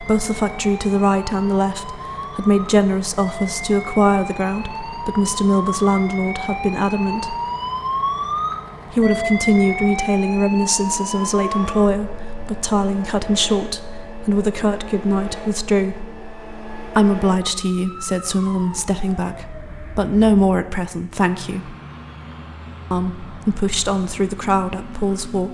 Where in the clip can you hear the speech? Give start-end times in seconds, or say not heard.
0.0-7.3, 8.9-16.1, 16.9-21.8, 22.9-25.4.